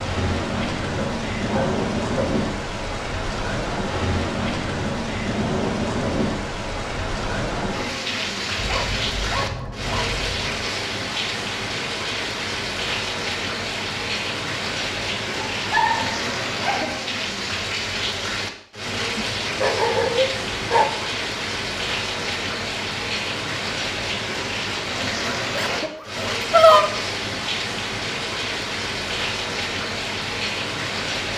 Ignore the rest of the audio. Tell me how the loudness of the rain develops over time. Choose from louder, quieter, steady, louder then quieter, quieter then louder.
steady.